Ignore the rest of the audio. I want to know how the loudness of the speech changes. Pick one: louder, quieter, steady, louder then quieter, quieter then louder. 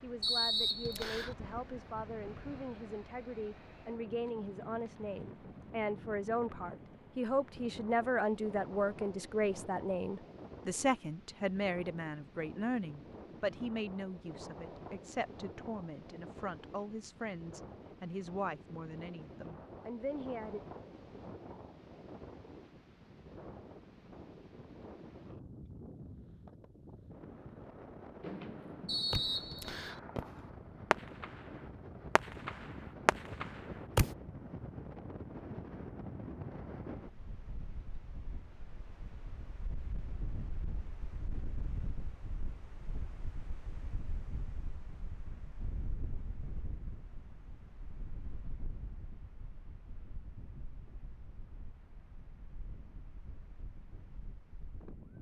louder then quieter.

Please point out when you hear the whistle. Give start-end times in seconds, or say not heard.
0.2-1.4, 28.9-30.0.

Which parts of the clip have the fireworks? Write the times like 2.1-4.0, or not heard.
28.2-34.1.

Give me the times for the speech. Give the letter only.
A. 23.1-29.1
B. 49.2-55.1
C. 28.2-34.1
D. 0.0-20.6
D.